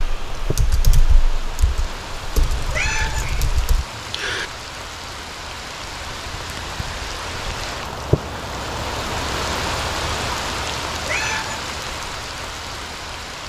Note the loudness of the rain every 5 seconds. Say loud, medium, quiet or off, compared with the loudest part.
medium, loud, loud.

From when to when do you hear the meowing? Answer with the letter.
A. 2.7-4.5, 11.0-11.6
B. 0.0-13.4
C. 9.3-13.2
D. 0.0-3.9
A.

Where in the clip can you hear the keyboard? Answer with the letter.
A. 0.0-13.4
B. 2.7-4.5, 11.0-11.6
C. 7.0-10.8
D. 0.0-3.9
D.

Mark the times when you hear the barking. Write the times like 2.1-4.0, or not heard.
not heard.